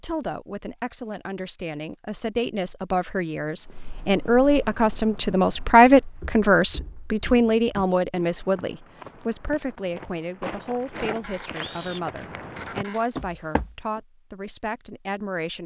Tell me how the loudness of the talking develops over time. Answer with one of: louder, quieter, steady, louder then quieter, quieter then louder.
louder then quieter.